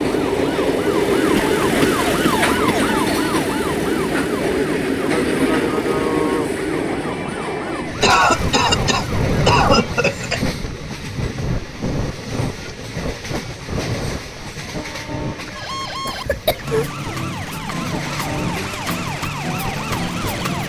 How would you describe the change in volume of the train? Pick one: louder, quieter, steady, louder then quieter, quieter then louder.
quieter.